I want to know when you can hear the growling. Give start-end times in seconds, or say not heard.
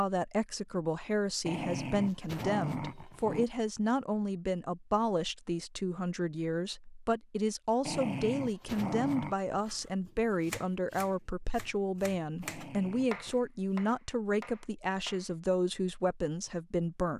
1.4-3.5, 7.8-9.3, 12.4-13.4.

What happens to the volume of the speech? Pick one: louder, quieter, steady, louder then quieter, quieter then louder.
steady.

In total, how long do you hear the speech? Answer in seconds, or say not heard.
17 s.